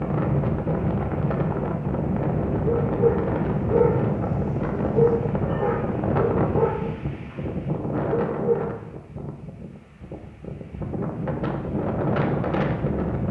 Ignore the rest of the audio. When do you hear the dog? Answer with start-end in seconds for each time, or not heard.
2.9-7.3, 8.2-8.7.